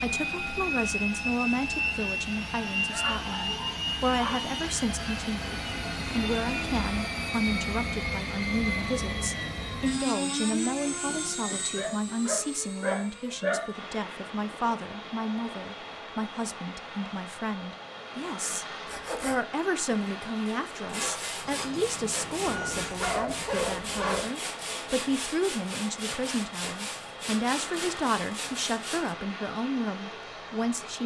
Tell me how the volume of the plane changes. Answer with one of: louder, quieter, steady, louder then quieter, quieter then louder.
quieter.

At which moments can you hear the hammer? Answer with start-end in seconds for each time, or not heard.
not heard.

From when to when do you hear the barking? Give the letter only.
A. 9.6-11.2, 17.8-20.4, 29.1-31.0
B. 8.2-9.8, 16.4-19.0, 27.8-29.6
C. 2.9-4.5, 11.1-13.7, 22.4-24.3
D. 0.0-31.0
C.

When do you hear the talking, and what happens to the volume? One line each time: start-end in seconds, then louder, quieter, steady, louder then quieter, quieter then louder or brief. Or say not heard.
0.0-31.0 steady.